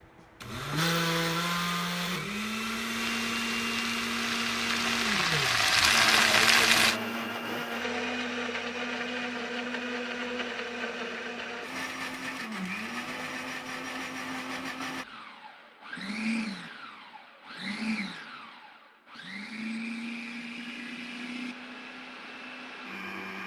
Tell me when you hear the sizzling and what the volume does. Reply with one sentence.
You can hear the sizzling from 2.9 to 7.0 s, getting louder.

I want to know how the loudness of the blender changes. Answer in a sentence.
The loudness of the blender goes down.